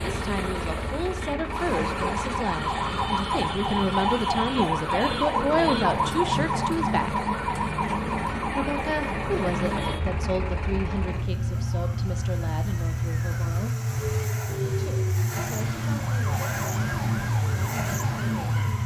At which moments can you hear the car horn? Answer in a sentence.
The car horn can't be heard in this clip.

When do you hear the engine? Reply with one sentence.
The engine can be heard from 0.0 to 18.8 s.